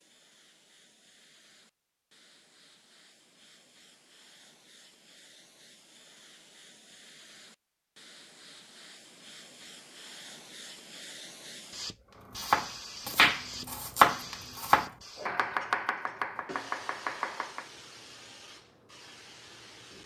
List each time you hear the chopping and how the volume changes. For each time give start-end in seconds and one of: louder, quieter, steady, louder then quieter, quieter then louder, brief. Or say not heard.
12.3-17.6 quieter.